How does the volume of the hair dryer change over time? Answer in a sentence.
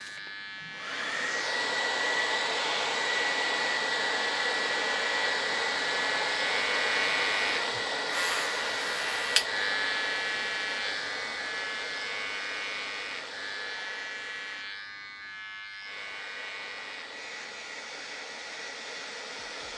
The volume of the hair dryer goes down.